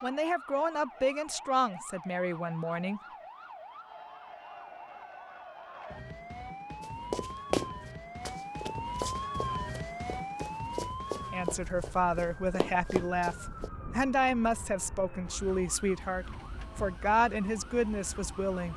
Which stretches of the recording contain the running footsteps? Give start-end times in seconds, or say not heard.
6.8-13.7.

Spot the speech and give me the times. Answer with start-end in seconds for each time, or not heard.
0.0-3.0, 11.3-18.7.